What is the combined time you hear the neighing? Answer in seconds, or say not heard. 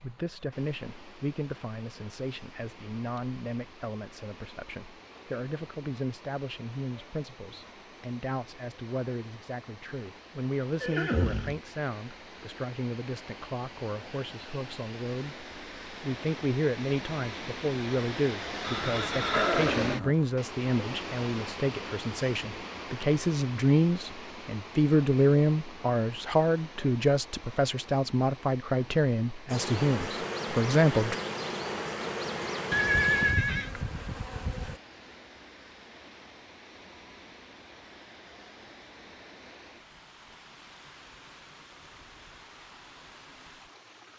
3 s.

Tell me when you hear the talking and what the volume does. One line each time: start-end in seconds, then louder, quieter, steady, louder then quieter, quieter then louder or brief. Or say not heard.
0.0-31.1 louder.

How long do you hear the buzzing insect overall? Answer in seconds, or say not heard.
5 s.